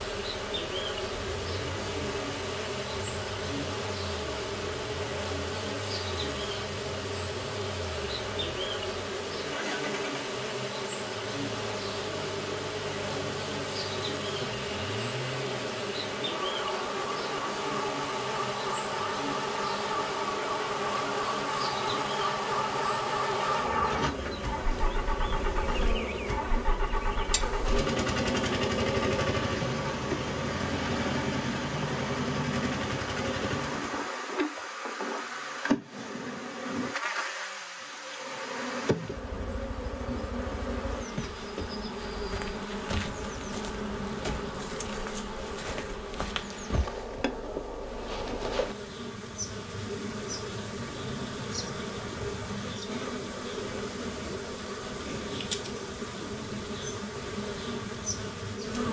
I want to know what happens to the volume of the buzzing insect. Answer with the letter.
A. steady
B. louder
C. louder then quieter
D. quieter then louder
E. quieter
A.